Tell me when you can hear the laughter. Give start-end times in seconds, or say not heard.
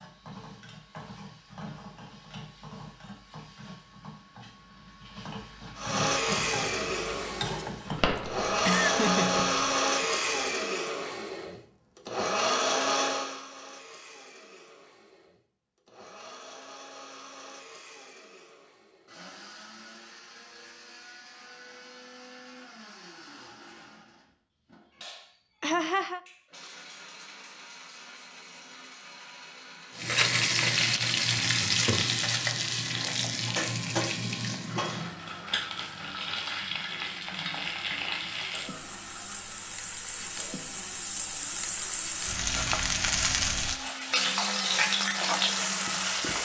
8.2-10.1, 25.6-26.2.